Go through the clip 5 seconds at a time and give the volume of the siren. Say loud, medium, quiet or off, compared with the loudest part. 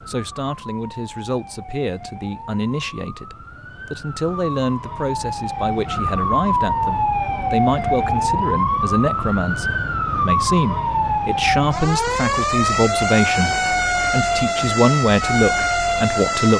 quiet, loud, loud, loud.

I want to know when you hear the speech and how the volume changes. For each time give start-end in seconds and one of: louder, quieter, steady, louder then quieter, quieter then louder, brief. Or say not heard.
0.1-16.5 louder.